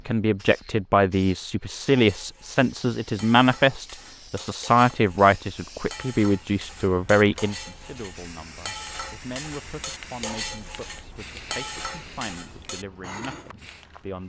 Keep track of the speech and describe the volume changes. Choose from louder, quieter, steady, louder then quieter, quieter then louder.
quieter.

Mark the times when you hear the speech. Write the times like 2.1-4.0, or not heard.
0.1-14.2.